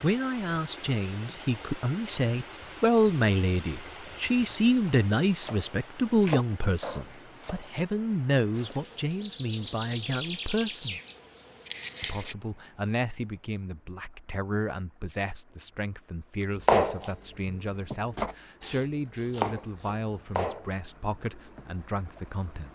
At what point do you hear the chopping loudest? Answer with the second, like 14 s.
17 s.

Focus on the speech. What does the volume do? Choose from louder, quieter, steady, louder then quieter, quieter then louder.
quieter.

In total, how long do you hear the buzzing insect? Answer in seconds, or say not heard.
4 s.